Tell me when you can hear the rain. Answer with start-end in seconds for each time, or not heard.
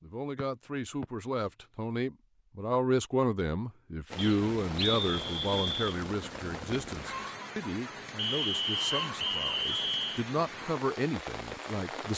4.1-12.1.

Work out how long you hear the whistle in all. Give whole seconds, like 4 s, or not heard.
5 s.